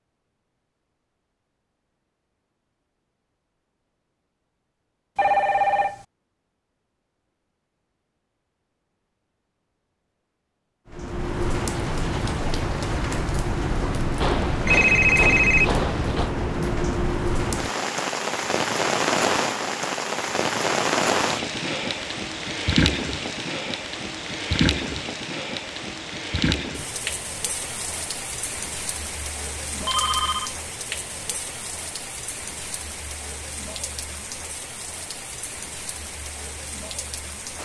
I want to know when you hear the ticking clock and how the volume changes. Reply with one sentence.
The ticking clock can't be heard in this clip.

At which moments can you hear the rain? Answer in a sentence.
The rain can be heard from 10.9 to 37.5 s.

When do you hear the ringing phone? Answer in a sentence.
You can hear the ringing phone from 5.2 to 6.0 s, from 14.2 to 16.3 s and from 29.8 to 30.6 s.